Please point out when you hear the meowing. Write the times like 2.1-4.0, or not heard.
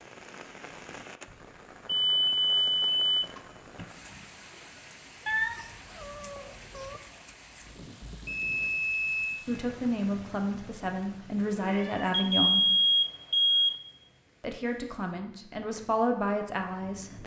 5.2-7.0, 11.4-12.4.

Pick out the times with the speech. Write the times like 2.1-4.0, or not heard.
9.4-12.7, 14.4-17.2.